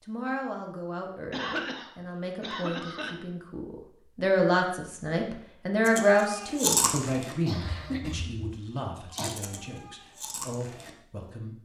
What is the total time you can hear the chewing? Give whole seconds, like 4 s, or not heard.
5 s.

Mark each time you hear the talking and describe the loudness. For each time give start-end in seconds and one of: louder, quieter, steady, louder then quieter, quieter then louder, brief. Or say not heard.
0.0-11.6 louder then quieter.